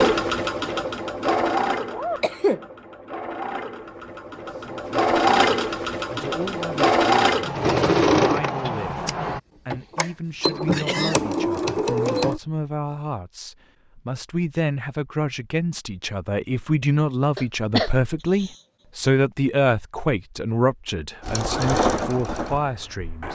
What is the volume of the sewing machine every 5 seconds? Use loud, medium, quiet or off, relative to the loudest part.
medium, loud, loud, off, medium.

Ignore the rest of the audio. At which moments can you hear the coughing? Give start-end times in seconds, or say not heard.
1.9-2.6, 10.7-11.2, 17.4-19.1.